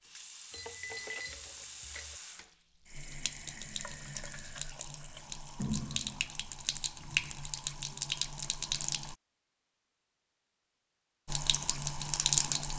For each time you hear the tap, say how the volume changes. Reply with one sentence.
The tap can be heard from 0.0 to 9.2 s, getting louder; and briefly from 11.2 to 12.7 s.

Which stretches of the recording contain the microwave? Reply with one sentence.
The microwave can't be heard in this clip.